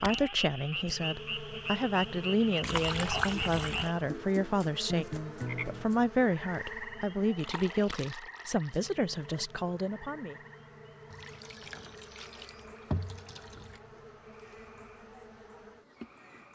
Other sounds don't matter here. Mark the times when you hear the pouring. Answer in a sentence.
The pouring can be heard from 2.6 to 3.9 s, from 7.3 to 8.9 s and from 11.1 to 13.8 s.